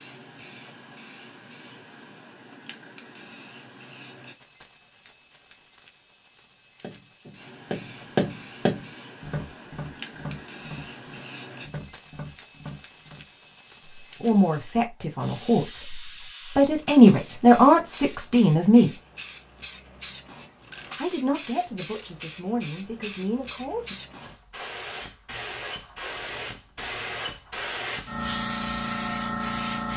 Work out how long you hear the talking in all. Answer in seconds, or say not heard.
8 s.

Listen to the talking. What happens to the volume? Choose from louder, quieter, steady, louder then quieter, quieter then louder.
louder then quieter.